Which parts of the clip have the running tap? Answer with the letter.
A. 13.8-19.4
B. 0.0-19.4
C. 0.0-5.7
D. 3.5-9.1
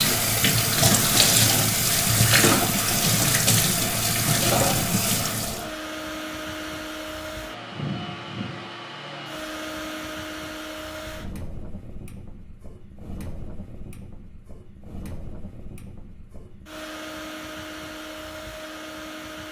C.